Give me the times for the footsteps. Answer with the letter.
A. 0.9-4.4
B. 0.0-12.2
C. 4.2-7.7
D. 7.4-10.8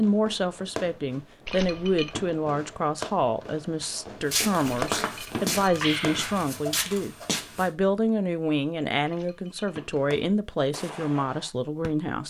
C.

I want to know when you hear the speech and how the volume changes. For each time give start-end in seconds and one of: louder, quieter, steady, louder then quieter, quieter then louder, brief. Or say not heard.
0.0-12.2 steady.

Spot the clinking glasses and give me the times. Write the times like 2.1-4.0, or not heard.
1.4-2.2, 4.7-6.5, 9.1-9.9.